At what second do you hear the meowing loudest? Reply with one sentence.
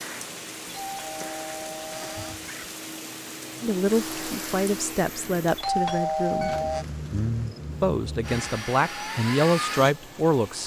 The loudest moment of the meowing is at 7 seconds.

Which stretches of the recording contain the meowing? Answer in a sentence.
You can hear the meowing from 2.2 to 2.7 s and from 6.4 to 8.4 s.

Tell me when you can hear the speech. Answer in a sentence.
The speech can be heard from 3.6 to 6.5 s and from 7.8 to 10.6 s.